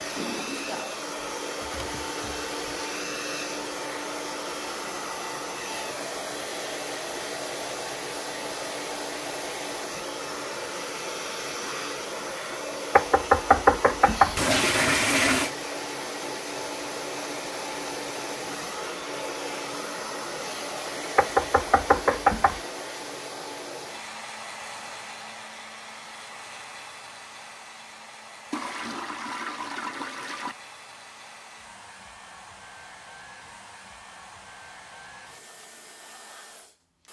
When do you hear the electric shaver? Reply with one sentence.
The electric shaver can't be heard in this clip.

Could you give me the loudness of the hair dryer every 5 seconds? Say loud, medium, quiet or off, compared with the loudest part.
loud, loud, loud, loud, loud, medium, quiet, quiet.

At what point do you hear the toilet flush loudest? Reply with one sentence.
The loudest moment of the toilet flush is at 15 seconds.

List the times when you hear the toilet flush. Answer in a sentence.
You can hear the toilet flush from 0.1 to 0.8 s, from 14.3 to 15.5 s and from 28.5 to 30.6 s.